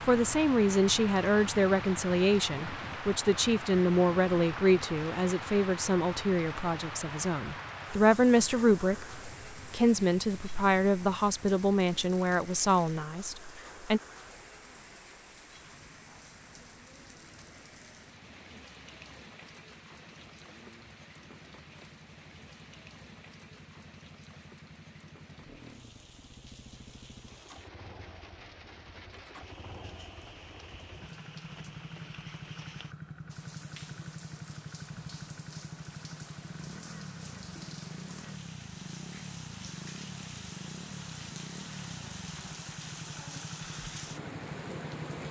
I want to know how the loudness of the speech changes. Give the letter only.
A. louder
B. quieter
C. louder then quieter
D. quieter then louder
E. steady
E.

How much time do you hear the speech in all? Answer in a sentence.
The speech can be heard for 14 seconds in total.